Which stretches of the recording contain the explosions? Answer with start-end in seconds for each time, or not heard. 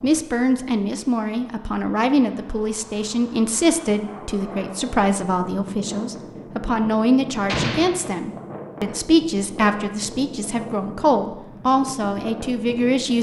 7.5-7.9.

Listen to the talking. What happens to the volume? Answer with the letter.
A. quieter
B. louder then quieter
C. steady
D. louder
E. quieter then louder
C.